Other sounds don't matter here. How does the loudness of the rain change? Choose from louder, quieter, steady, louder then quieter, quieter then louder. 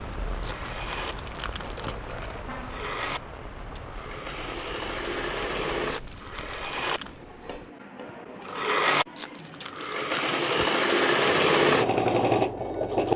quieter.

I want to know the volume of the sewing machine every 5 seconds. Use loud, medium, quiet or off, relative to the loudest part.
quiet, medium, loud.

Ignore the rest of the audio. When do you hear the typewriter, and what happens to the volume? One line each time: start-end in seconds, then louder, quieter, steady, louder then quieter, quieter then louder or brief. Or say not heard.
not heard.